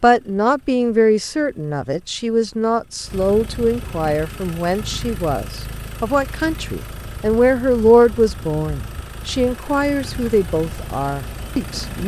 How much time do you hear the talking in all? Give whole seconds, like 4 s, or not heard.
12 s.